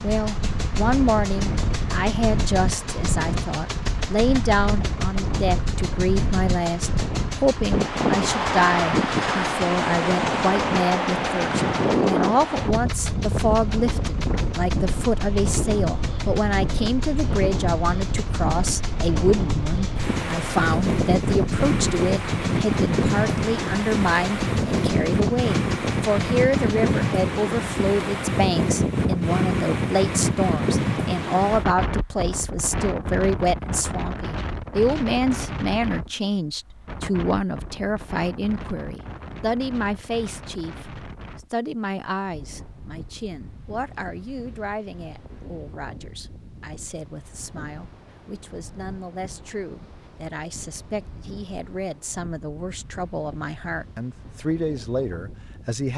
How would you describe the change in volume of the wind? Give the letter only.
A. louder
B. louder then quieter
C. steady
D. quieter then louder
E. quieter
E.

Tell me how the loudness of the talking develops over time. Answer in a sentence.
The loudness of the talking goes down.